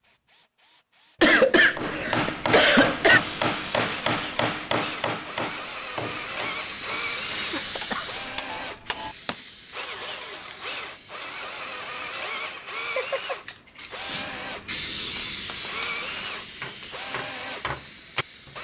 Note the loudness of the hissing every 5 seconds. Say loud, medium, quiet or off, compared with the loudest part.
off, loud, loud, loud.